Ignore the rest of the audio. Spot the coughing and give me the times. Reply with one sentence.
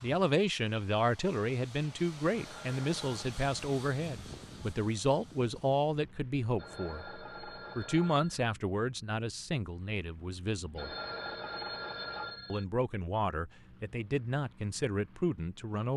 The coughing can't be heard in this clip.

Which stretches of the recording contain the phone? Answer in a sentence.
The phone can be heard from 2.3 to 3.3 s, from 6.5 to 8.5 s and from 10.8 to 12.7 s.